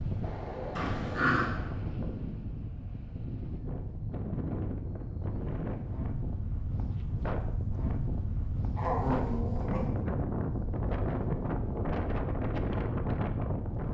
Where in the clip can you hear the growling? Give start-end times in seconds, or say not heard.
0.8-1.5, 8.8-9.8.